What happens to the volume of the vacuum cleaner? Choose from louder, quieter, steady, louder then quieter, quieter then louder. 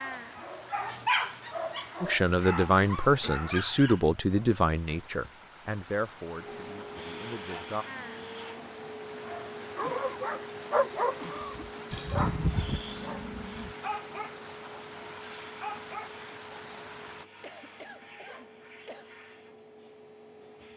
quieter.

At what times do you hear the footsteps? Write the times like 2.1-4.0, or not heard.
not heard.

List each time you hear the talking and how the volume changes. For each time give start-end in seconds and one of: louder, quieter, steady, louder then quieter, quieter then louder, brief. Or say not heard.
2.0-7.8 quieter.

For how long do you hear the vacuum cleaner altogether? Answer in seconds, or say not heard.
14 s.